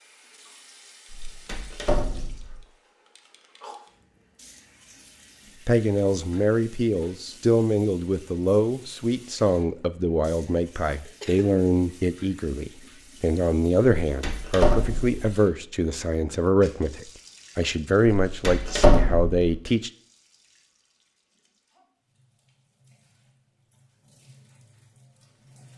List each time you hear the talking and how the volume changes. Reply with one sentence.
The talking can be heard from 5.7 to 19.9 s, at a steady volume.